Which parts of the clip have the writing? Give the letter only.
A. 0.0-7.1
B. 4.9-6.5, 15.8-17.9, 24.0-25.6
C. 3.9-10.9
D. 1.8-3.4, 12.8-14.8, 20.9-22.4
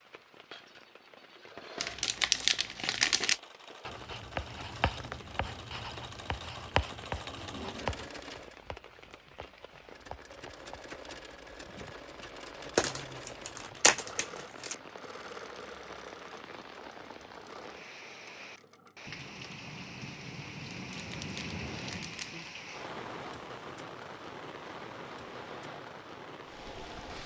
C.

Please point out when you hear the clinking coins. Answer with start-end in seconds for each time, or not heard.
not heard.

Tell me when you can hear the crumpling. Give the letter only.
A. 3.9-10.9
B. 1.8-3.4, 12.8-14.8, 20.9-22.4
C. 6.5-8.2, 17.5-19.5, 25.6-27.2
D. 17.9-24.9
B.